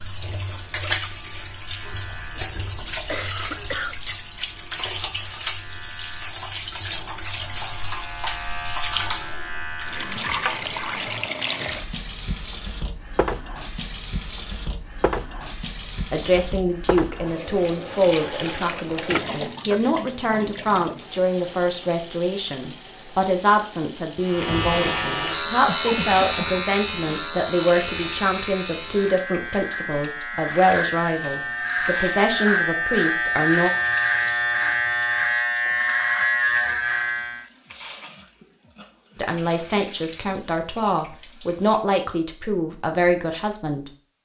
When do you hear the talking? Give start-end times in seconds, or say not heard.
16.1-33.7, 39.1-43.9.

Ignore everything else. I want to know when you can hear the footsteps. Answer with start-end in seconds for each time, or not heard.
not heard.